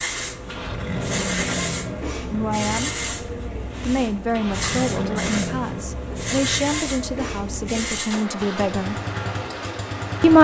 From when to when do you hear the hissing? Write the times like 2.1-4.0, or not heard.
0.0-8.2.